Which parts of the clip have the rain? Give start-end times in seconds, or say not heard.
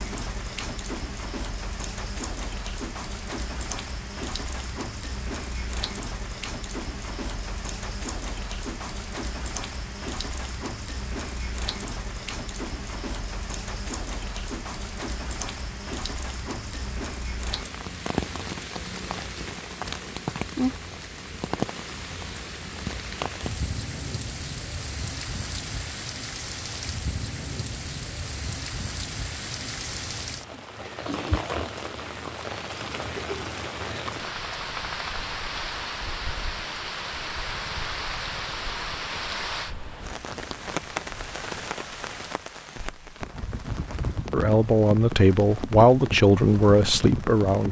0.0-47.6.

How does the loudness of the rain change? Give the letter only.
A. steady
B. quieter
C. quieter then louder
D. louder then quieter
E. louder
A.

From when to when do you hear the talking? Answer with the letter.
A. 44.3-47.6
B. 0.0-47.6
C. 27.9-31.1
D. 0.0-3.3
A.